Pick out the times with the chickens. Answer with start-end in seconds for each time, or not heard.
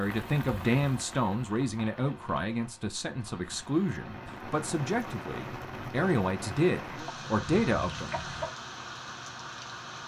7.0-8.6.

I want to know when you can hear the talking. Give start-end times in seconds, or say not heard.
0.0-8.2.